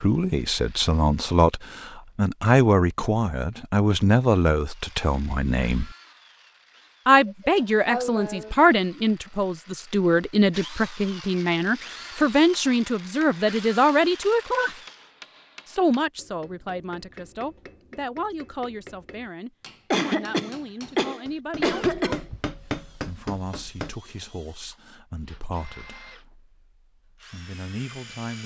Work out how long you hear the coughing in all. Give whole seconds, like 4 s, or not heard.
4 s.